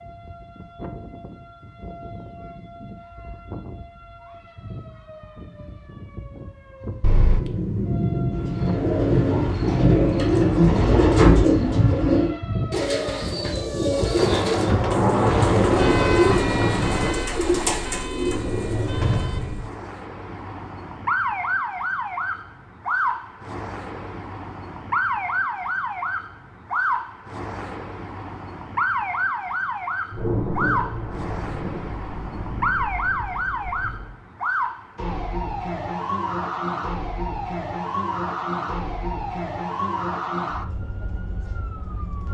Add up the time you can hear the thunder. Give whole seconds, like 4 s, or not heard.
10 s.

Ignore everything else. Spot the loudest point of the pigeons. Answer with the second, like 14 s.
11 s.